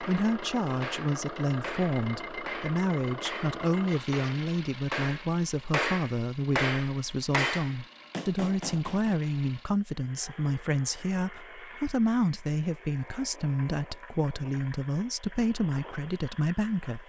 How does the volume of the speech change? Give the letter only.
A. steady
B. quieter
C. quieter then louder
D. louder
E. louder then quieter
A.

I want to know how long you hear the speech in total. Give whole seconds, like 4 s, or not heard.
17 s.